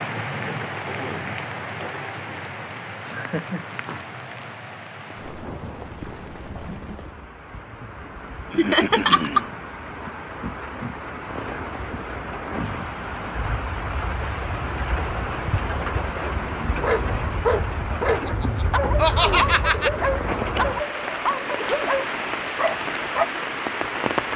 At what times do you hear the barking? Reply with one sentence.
You can hear the barking from 16.8 to 23.2 s.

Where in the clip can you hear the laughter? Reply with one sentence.
You can hear the laughter from 3.1 to 3.8 s, from 8.6 to 9.4 s and from 17.9 to 19.9 s.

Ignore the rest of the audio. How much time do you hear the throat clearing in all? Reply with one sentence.
You can hear the throat clearing for 3 seconds altogether.